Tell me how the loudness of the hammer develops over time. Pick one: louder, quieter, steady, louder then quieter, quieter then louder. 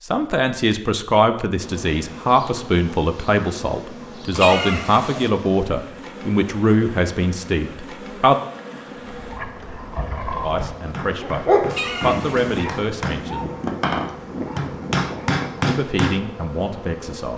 louder.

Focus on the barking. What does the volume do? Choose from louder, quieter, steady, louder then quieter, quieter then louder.
louder then quieter.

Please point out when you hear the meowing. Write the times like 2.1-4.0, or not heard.
4.3-5.3, 11.7-12.7.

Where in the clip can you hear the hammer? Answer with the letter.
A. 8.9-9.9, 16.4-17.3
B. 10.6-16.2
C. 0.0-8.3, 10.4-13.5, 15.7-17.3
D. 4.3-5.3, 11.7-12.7
B.